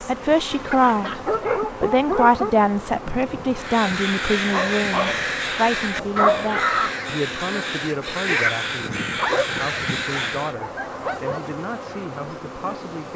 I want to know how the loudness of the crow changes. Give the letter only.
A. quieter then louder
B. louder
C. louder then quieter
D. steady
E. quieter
D.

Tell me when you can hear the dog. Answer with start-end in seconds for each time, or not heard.
0.7-2.5, 4.5-6.6, 9.2-11.6.